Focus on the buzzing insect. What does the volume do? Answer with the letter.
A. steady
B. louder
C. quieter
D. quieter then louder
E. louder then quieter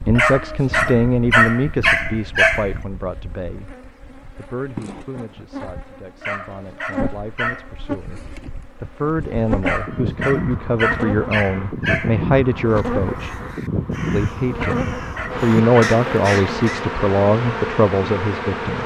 B.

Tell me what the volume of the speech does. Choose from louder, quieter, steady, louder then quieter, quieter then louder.
quieter then louder.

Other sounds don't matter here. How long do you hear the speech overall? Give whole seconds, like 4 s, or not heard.
18 s.